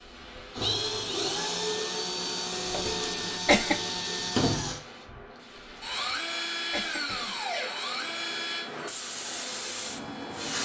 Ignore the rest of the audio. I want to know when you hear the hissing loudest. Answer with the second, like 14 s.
10 s.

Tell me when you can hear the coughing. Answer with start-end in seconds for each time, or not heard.
2.6-3.8, 5.9-7.3.